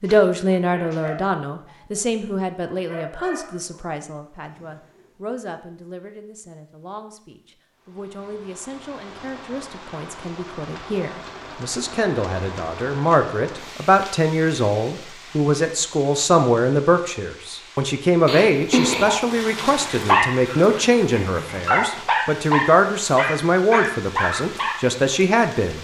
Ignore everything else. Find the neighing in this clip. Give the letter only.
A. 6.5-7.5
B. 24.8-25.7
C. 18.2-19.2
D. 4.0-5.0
C.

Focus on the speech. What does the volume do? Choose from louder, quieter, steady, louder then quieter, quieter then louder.
quieter then louder.